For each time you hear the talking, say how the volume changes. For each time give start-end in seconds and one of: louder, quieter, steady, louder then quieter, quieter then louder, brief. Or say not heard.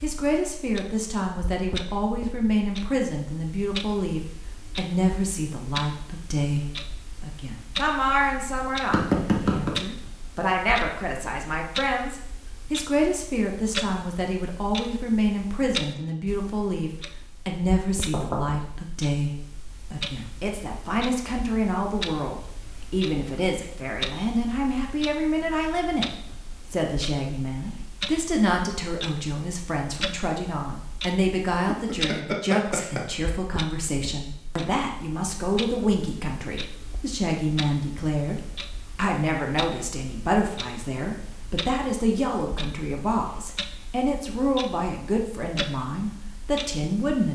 0.0-47.2 steady.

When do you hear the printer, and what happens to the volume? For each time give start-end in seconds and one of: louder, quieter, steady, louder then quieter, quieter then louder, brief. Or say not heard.
not heard.